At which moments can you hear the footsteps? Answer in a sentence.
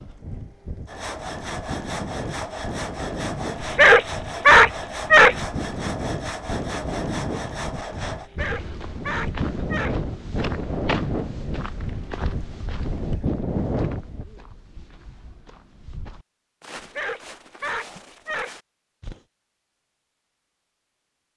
The footsteps can be heard from 8.3 to 19.2 s.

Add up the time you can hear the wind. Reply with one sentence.
You can hear the wind for 14 seconds altogether.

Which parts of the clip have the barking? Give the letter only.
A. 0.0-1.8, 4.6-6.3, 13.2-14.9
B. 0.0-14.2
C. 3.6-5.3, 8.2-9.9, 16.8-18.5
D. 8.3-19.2
C.